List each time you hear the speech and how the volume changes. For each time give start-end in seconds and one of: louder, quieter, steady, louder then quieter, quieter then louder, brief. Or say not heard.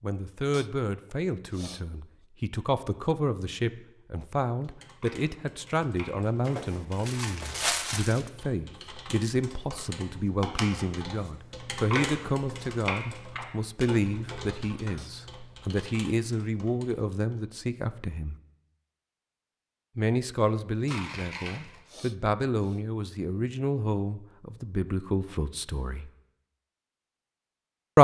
0.0-18.4 steady
19.9-26.1 steady.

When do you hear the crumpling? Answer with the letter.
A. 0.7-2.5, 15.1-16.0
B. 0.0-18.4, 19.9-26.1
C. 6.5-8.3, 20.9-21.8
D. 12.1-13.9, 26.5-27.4
C.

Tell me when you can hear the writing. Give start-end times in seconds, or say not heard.
not heard.